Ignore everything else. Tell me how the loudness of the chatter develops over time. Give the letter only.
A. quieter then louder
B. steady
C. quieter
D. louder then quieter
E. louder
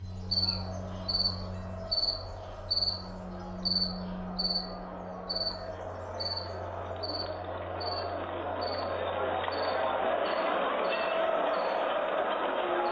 E.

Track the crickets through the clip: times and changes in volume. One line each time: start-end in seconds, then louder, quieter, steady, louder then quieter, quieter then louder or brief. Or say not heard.
0.0-12.8 quieter.